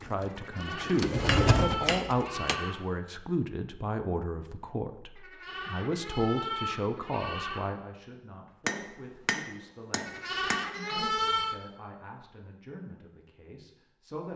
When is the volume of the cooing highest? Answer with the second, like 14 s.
1 s.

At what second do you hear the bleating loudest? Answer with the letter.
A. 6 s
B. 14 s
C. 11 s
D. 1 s
C.